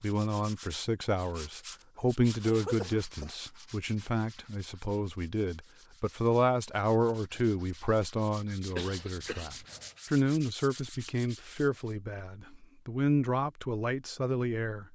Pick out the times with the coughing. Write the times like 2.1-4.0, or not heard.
2.5-3.4, 8.8-9.9.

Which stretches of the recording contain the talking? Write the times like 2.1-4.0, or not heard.
0.0-14.9.